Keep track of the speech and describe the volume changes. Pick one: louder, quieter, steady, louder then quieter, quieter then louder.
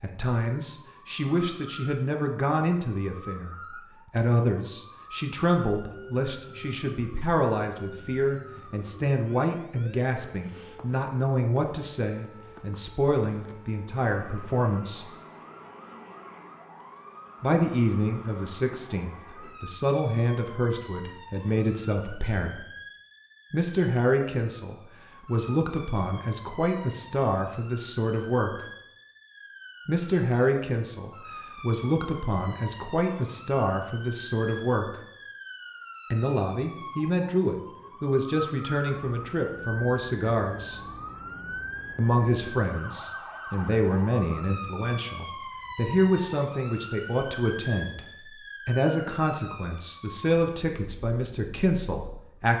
steady.